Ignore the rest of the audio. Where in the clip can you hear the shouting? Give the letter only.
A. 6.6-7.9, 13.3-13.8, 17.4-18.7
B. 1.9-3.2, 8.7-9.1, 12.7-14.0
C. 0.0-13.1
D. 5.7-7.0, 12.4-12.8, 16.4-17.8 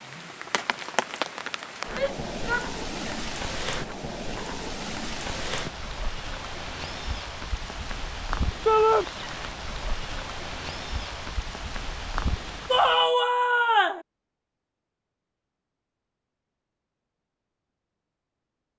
B.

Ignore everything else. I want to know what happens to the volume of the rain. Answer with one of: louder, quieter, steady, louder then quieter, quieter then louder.
steady.